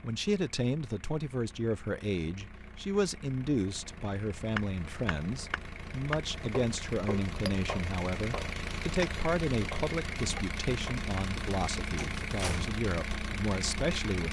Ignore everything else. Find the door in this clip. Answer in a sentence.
The door can be heard from 11.9 to 12.8 s.